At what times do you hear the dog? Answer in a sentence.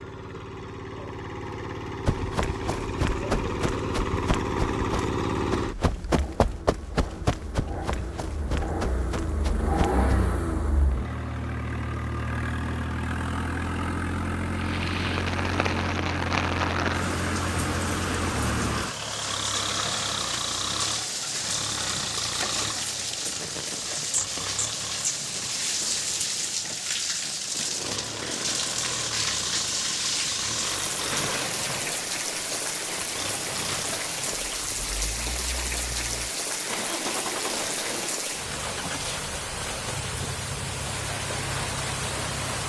You can't hear the dog here.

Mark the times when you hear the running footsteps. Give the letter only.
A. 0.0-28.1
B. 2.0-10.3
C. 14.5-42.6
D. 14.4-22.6
B.